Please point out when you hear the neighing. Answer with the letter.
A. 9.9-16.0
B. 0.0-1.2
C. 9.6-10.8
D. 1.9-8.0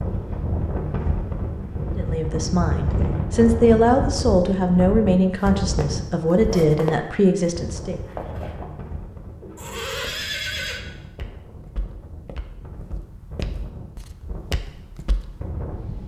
C.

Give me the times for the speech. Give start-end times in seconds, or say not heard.
1.9-8.0.